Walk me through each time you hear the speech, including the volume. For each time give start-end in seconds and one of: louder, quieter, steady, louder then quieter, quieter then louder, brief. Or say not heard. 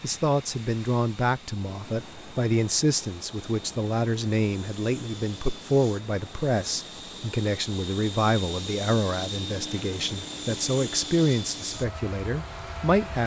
0.0-13.2 steady.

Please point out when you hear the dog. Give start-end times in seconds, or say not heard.
not heard.